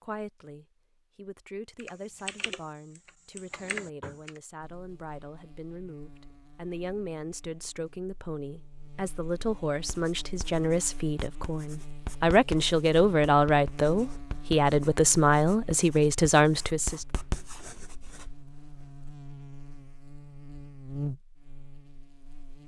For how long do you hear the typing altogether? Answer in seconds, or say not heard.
3 s.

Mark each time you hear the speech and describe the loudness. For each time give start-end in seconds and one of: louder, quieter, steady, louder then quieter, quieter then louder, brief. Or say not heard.
0.0-17.1 louder.